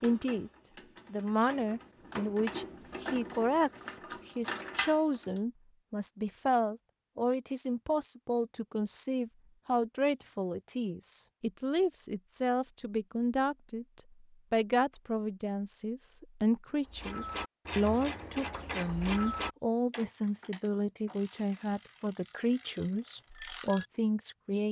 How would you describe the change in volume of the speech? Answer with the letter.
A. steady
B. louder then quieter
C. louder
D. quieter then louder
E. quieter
A.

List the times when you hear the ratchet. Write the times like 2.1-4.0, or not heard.
0.0-5.4, 16.9-23.9.